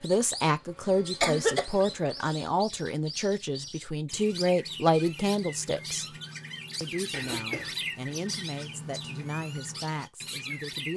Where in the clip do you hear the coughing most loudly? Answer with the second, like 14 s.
1 s.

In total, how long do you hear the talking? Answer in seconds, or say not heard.
10 s.